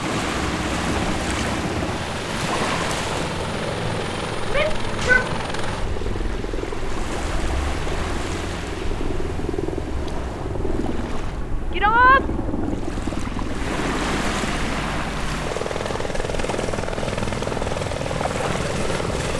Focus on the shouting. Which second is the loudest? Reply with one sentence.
The volume of the shouting peaks at 12 seconds.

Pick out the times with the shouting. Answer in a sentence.
The shouting can be heard from 4.5 to 5.3 s and from 11.7 to 12.2 s.